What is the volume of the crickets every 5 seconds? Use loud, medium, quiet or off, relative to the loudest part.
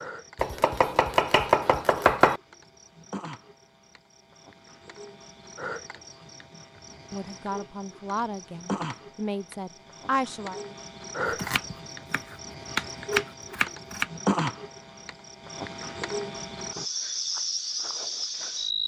quiet, medium, loud, loud.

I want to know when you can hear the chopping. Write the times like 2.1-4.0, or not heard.
0.3-2.4, 11.2-14.1.